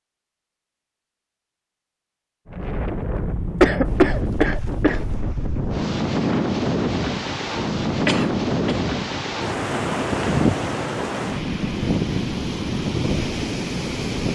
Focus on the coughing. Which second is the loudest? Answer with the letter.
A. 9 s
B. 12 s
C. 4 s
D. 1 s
C.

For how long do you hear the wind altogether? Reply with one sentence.
You can hear the wind for 12 seconds altogether.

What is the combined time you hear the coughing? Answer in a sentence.
You can hear the coughing for 2 seconds altogether.